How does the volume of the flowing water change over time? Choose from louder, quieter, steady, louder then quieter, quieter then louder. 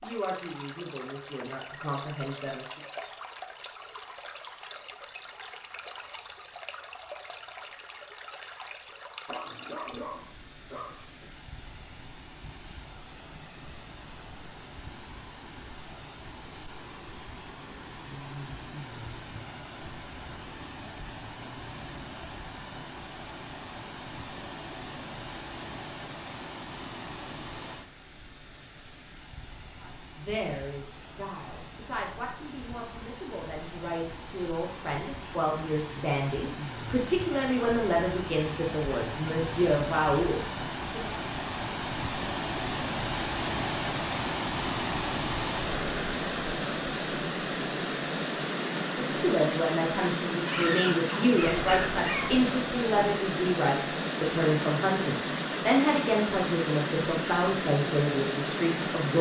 louder.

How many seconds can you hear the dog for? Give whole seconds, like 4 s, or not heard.
4 s.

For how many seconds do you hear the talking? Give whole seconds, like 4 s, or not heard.
24 s.